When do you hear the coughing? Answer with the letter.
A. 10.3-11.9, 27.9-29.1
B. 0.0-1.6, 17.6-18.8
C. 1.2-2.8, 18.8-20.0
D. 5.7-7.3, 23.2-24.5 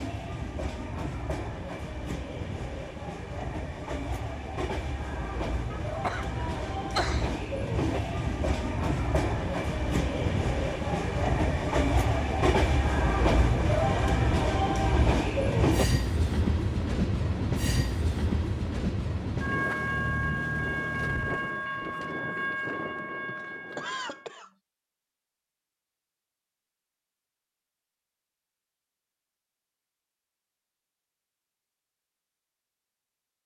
D.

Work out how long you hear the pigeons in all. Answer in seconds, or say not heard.
not heard.